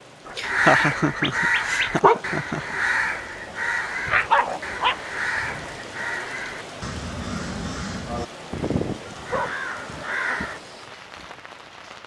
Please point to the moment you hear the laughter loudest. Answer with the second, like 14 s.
1 s.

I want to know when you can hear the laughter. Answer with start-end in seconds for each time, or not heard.
0.3-2.8.